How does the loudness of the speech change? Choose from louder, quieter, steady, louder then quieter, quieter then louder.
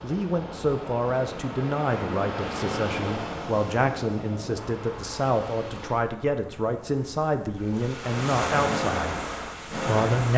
steady.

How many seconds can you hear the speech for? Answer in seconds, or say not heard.
10 s.